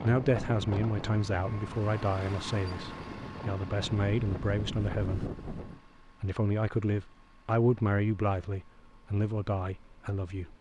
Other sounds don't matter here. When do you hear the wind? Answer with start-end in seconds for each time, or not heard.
0.0-5.8.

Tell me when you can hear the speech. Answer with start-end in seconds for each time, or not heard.
0.0-5.3, 6.2-10.5.